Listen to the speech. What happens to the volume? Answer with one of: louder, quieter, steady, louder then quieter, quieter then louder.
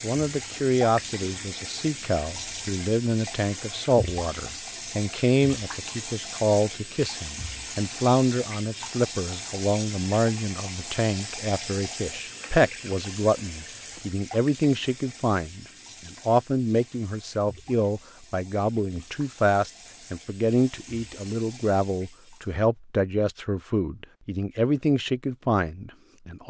steady.